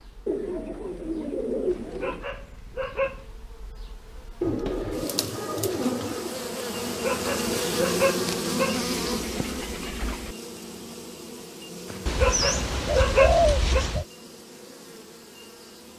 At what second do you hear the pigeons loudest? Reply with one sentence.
The loudest moment of the pigeons is at 13 seconds.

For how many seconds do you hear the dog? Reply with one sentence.
The dog can be heard for 6 seconds in total.